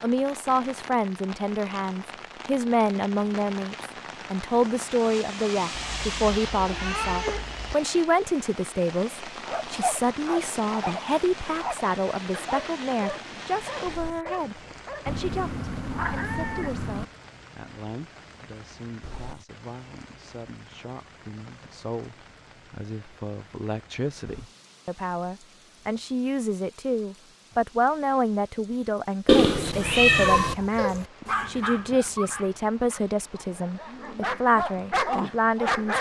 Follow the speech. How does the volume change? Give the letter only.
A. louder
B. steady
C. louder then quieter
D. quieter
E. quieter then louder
E.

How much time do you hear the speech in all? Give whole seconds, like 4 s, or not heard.
36 s.